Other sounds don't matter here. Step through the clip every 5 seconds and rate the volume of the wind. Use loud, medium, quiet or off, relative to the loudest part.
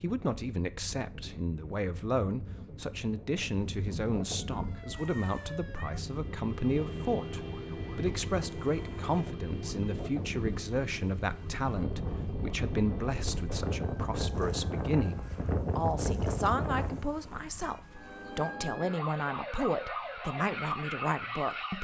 medium, medium, loud, loud, off.